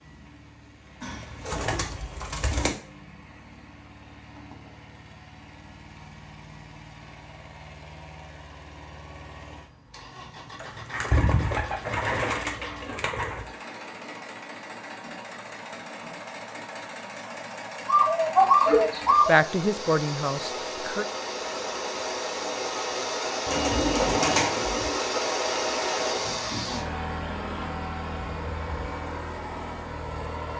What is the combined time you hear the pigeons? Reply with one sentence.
The pigeons can be heard for 8 seconds in total.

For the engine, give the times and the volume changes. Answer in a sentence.
The engine can be heard from 0.0 to 30.5 s, getting louder.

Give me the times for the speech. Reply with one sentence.
You can hear the speech from 19.2 to 21.1 s.